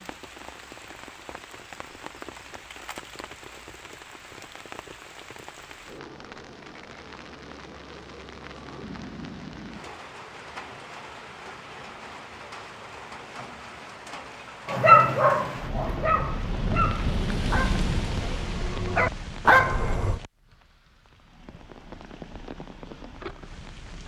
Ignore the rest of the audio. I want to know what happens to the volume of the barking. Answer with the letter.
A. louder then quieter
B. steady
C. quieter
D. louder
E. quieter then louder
E.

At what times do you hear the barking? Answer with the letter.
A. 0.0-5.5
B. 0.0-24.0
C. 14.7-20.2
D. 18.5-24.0
C.